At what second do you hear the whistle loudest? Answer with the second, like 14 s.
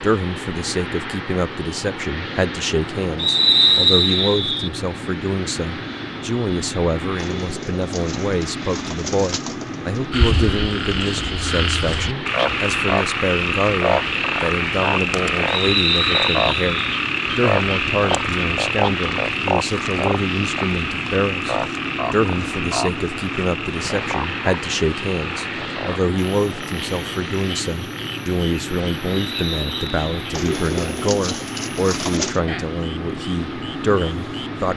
4 s.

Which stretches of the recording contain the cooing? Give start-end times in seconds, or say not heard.
7.2-10.1, 30.3-32.4.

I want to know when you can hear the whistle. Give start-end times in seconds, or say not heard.
3.1-4.7, 15.4-16.8, 29.1-30.2.